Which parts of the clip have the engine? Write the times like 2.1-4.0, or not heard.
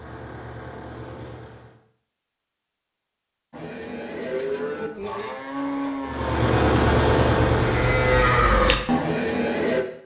0.0-1.8, 6.0-8.5.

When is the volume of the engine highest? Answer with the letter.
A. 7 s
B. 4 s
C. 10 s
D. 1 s
A.